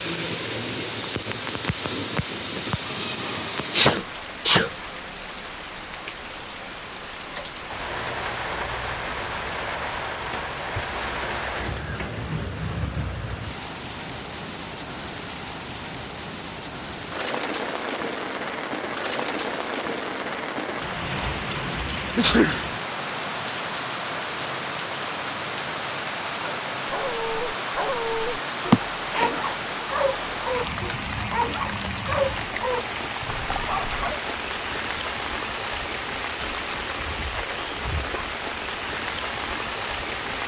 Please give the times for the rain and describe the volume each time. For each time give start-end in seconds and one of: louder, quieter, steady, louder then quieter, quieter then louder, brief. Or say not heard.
0.0-40.4 steady.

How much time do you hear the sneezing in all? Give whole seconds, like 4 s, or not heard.
3 s.